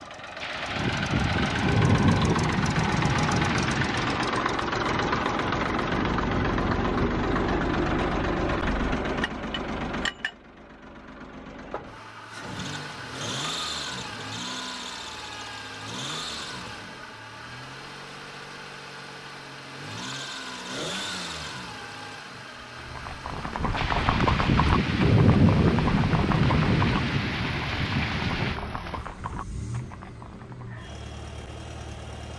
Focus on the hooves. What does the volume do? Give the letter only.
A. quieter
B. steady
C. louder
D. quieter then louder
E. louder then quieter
A.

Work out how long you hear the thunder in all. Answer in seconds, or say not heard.
9 s.